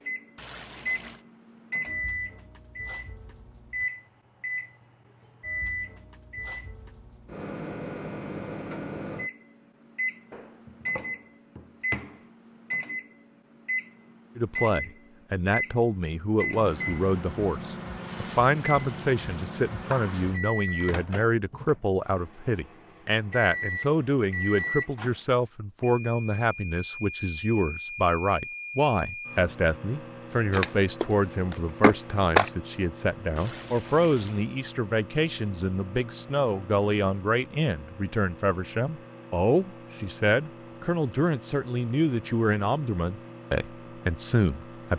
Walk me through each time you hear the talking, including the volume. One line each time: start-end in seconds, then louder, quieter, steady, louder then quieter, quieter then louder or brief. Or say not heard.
14.3-44.9 steady.